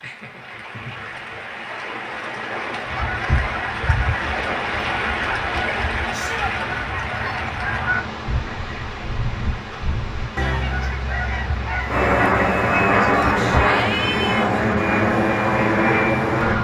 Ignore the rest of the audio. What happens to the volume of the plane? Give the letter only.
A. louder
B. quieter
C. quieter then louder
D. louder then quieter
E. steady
E.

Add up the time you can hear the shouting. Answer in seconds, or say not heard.
2 s.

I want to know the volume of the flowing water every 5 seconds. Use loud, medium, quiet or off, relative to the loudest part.
loud, loud, medium, medium.